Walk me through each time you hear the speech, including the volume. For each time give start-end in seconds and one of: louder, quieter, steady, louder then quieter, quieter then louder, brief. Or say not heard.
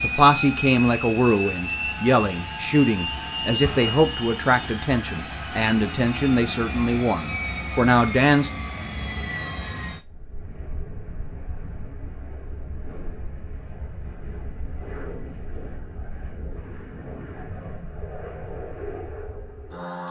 0.0-8.5 steady.